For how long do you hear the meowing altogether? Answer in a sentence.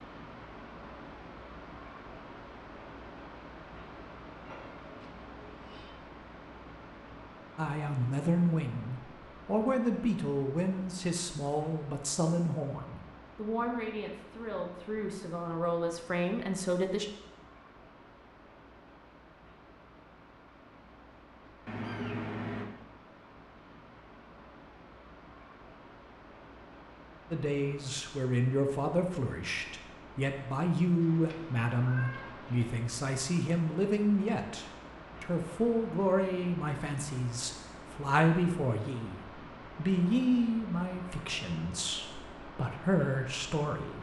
You can hear the meowing for 4 seconds altogether.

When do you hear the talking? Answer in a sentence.
You can hear the talking from 7.5 to 17.1 s and from 27.3 to 43.9 s.